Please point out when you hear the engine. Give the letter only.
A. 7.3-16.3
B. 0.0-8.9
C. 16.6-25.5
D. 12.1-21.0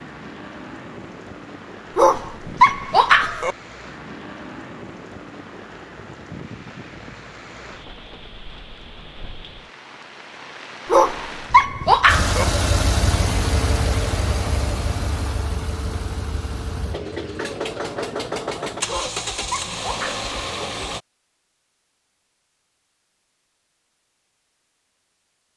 D.